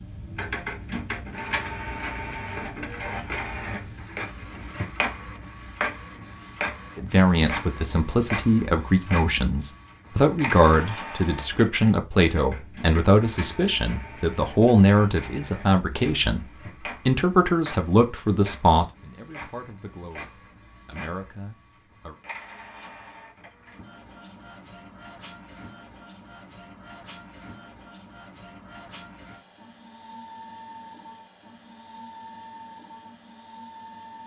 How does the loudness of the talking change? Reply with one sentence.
The volume of the talking goes down.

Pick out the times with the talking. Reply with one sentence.
The talking can be heard from 7.0 to 16.4 s and from 17.1 to 22.1 s.